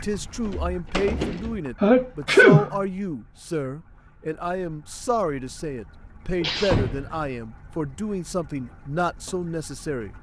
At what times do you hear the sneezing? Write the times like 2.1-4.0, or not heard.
1.8-2.8, 6.4-7.3.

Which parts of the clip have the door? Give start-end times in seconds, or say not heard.
0.5-1.6, 6.7-7.2.